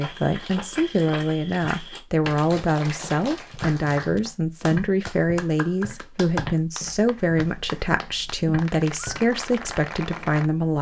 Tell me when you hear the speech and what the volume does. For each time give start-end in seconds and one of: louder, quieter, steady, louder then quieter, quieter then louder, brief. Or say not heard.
0.0-10.7 steady.